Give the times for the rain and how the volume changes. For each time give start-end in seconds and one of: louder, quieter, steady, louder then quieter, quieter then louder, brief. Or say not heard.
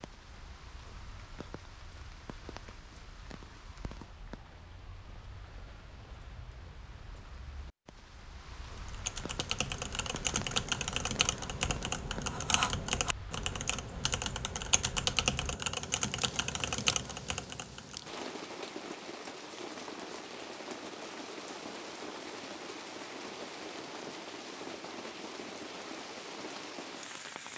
0.0-27.5 louder.